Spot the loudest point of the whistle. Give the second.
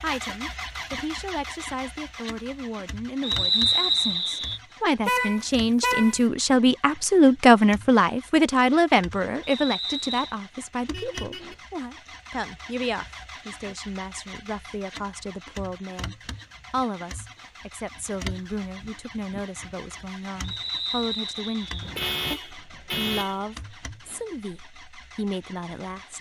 4 s.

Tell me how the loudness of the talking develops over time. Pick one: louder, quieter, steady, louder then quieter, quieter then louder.
louder then quieter.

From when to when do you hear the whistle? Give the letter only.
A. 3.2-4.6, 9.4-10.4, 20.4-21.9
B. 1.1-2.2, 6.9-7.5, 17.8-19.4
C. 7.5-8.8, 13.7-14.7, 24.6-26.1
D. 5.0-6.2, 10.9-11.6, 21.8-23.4
A.